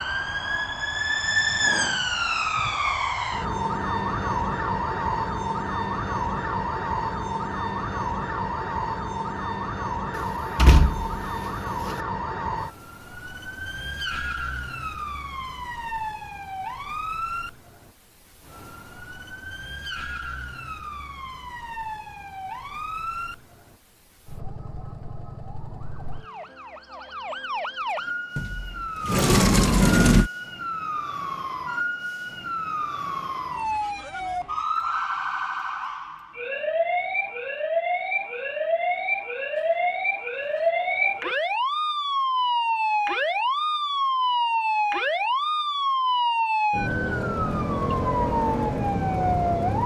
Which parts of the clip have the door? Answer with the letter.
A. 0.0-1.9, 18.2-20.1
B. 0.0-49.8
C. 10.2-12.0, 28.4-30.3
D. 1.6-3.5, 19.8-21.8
C.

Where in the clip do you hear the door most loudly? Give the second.
30 s.